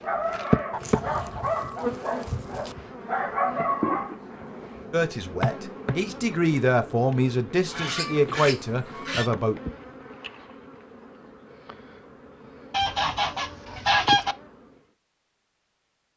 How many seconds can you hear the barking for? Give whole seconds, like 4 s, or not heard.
5 s.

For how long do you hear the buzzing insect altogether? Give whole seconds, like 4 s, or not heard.
15 s.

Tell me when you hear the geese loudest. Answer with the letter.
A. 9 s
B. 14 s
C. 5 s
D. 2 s
B.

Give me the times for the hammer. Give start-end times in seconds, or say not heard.
not heard.